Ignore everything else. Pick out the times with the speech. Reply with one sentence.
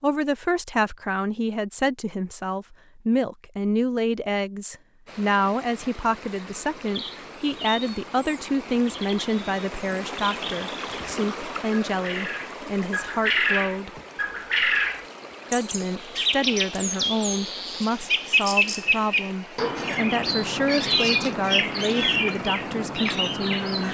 The speech can be heard from 0.0 to 13.9 s and from 15.5 to 23.9 s.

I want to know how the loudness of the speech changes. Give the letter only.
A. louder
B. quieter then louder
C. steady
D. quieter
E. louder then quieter
C.